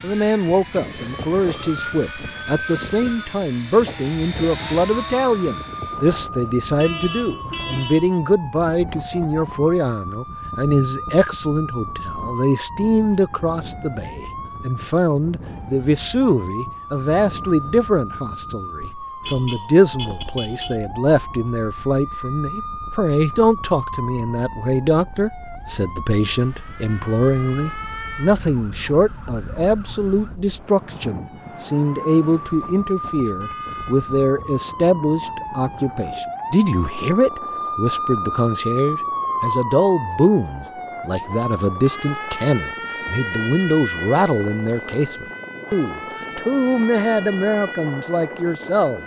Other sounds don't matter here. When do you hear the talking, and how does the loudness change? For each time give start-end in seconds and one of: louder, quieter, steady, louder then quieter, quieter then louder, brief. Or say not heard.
0.0-49.0 steady.